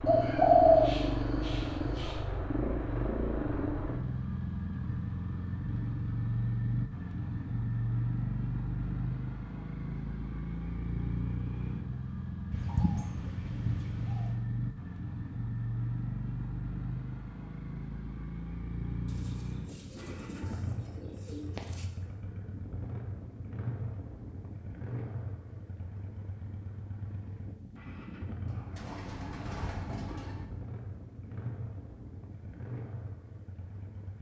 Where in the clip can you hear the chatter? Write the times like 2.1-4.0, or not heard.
not heard.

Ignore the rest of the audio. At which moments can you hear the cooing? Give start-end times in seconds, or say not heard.
0.1-2.1, 12.5-14.3, 19.1-21.9, 28.4-30.4.